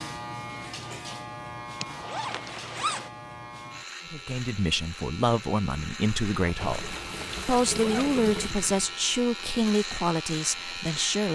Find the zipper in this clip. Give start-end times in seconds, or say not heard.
1.8-3.1, 6.4-8.2.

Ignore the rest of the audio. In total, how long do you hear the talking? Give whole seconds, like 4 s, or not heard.
7 s.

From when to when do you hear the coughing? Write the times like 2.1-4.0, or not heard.
not heard.